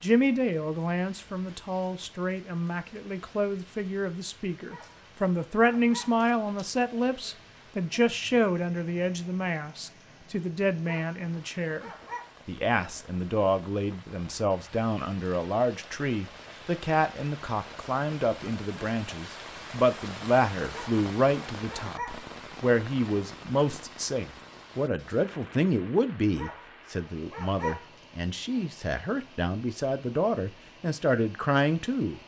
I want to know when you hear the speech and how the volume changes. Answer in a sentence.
You can hear the speech from 0.0 to 32.2 s, at a steady volume.